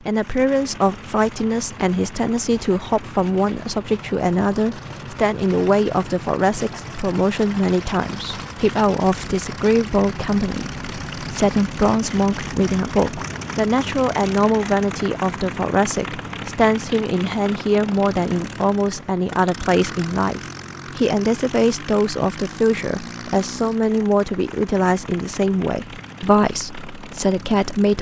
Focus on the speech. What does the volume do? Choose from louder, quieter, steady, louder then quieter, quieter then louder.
steady.